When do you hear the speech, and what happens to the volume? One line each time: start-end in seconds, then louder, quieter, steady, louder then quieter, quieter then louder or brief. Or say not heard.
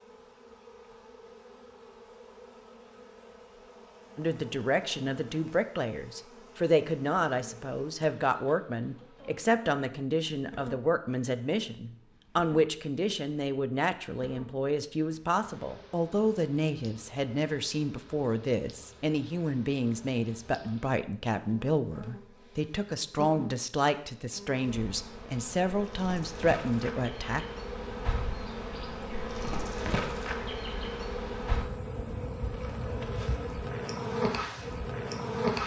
4.2-27.4 steady.